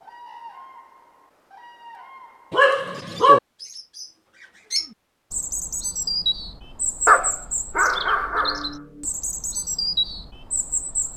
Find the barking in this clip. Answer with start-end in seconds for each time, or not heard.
2.5-3.4, 7.0-8.8.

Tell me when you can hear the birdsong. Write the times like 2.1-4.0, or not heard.
0.0-11.1.